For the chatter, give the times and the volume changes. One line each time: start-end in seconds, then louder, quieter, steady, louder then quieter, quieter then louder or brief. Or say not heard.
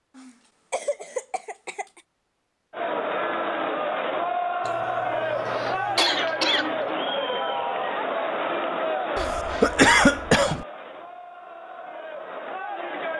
2.7-13.1 quieter.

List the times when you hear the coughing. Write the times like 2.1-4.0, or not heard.
0.1-2.0, 4.7-6.7, 9.2-10.7.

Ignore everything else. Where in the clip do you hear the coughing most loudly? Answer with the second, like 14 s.
10 s.